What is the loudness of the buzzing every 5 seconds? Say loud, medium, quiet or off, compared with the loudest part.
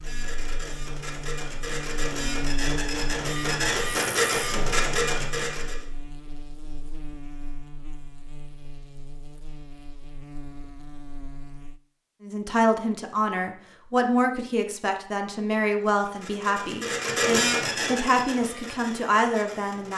loud, medium, medium, off.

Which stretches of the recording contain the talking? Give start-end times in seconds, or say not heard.
12.2-19.9.